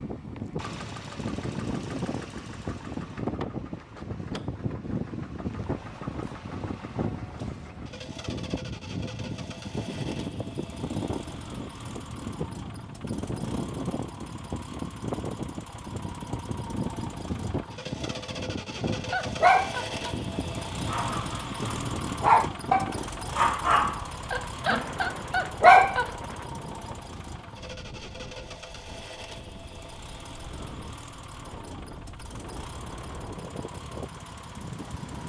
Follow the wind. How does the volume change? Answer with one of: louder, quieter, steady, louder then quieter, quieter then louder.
quieter.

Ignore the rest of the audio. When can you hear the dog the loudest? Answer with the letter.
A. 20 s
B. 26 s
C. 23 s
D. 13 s
B.